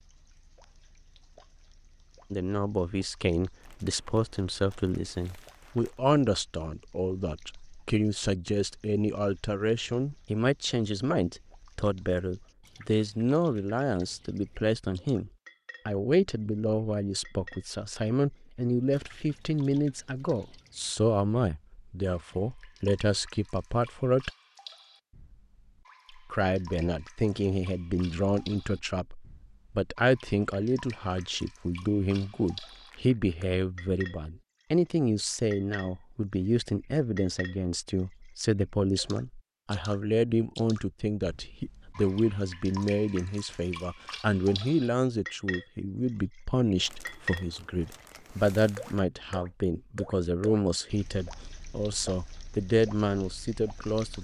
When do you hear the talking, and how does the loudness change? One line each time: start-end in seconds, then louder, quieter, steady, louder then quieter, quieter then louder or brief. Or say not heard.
2.3-24.3 steady
26.1-54.1 steady.